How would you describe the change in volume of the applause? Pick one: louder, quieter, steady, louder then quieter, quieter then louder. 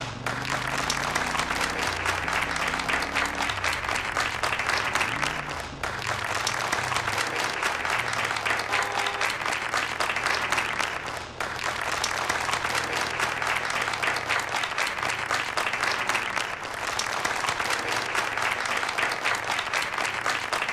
steady.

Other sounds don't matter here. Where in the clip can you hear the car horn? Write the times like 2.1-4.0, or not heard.
8.7-9.3.